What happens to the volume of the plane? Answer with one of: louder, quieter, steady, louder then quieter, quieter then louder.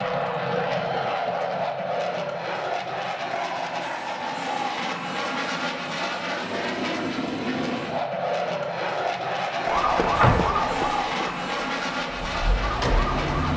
steady.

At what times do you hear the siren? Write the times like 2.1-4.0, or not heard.
9.7-13.5.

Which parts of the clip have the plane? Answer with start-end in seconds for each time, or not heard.
0.0-13.5.